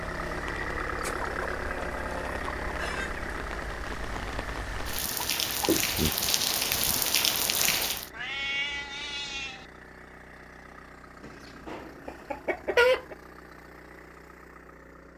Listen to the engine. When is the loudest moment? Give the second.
1 s.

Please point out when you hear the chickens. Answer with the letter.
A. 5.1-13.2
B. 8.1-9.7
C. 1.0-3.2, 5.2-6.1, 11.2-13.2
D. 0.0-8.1
C.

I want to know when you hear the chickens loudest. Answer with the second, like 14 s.
13 s.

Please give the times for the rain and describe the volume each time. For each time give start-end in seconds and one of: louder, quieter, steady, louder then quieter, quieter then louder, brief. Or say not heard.
0.0-8.1 louder.